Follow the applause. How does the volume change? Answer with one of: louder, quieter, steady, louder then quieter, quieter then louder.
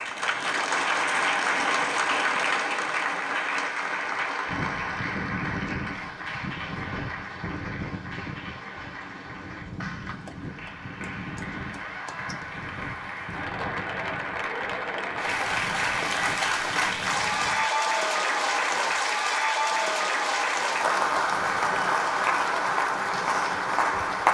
quieter then louder.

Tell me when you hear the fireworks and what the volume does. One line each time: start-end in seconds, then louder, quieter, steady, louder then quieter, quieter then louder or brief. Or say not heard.
not heard.